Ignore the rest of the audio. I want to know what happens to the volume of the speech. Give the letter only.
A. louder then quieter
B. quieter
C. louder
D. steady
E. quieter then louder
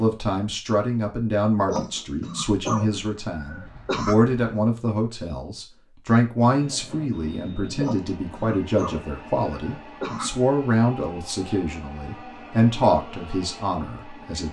D.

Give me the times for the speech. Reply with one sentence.
You can hear the speech from 0.0 to 14.4 s.